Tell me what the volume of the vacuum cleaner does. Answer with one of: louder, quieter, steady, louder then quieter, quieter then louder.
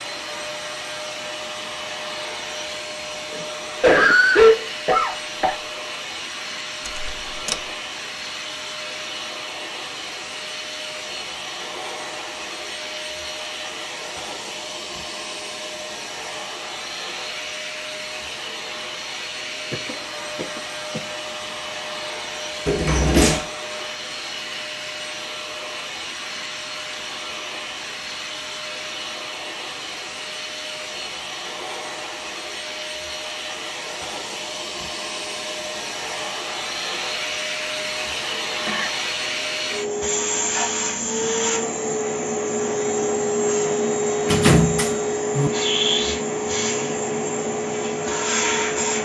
louder.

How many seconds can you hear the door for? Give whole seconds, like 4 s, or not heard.
3 s.